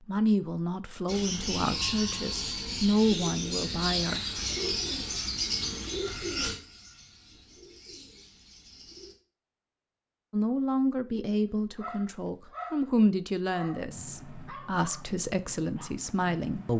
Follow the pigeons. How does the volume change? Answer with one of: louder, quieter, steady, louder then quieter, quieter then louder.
quieter.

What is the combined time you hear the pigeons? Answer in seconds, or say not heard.
8 s.